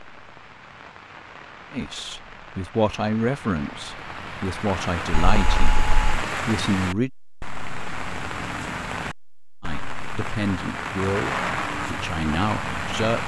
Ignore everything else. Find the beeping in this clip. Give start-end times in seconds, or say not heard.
5.1-6.2.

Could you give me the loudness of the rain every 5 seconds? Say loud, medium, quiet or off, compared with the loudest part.
medium, loud, loud.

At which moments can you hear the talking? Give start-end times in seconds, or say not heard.
1.7-7.1, 9.6-13.2.